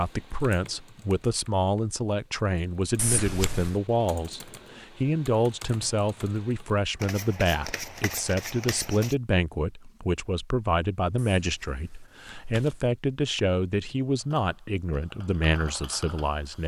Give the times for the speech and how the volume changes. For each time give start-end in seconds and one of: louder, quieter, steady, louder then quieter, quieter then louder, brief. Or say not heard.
0.0-16.6 steady.